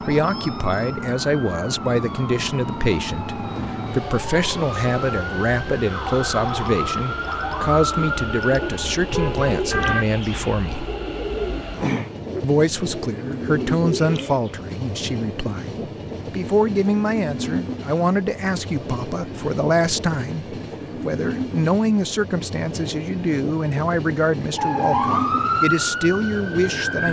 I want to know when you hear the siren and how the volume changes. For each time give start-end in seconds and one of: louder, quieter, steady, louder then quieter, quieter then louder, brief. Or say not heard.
0.0-10.1 louder
24.6-27.0 brief.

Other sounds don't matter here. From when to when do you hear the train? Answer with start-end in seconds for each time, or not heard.
0.0-27.0.